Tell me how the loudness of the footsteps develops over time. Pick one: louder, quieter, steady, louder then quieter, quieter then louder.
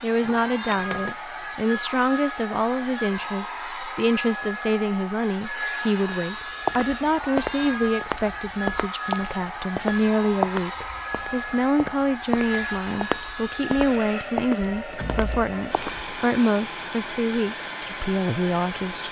steady.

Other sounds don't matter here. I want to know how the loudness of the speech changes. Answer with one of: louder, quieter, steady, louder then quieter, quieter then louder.
steady.